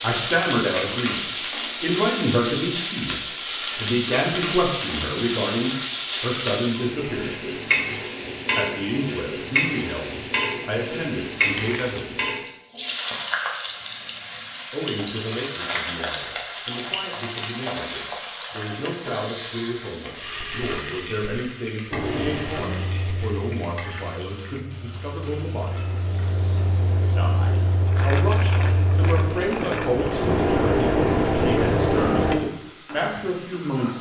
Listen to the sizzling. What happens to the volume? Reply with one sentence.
The volume of the sizzling goes down.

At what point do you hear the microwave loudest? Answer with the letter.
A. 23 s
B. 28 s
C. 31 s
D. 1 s
C.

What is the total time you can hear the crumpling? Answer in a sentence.
You can hear the crumpling for 3 seconds altogether.